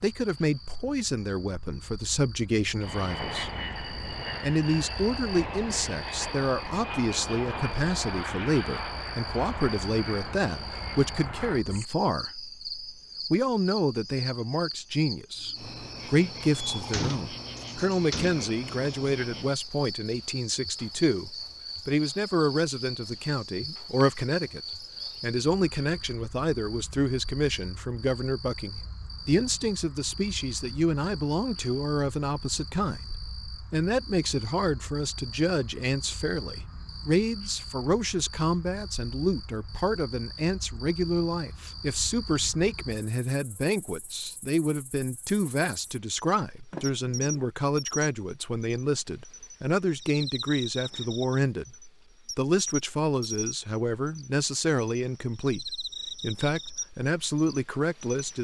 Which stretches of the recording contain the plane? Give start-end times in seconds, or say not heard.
2.8-11.7.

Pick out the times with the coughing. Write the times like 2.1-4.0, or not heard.
not heard.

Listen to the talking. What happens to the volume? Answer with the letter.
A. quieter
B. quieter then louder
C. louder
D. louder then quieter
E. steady
E.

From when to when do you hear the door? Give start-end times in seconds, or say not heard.
16.7-18.5, 46.7-47.5.